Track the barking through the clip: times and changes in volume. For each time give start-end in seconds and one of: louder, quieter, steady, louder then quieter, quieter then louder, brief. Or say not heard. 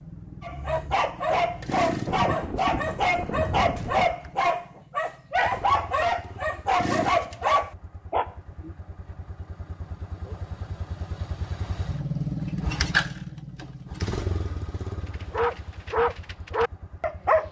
0.4-8.7 steady
15.1-17.4 brief.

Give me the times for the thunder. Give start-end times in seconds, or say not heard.
2.0-4.1.